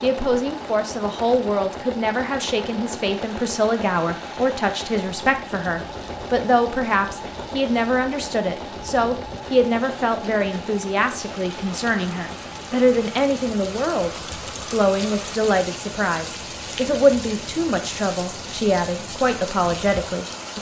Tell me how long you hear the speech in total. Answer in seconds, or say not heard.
20 s.